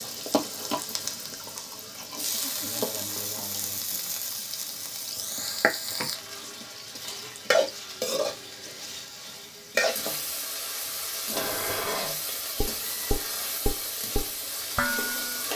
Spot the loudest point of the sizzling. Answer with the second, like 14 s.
8 s.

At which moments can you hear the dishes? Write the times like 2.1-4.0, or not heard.
11.3-15.4.